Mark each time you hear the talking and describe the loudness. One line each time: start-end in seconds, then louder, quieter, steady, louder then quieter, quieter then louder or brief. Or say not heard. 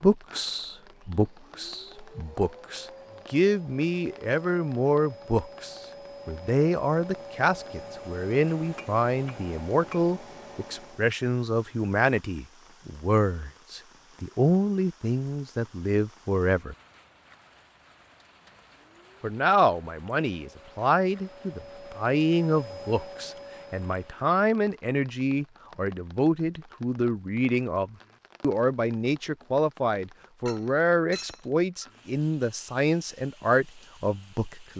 0.0-16.8 steady
19.2-34.7 steady.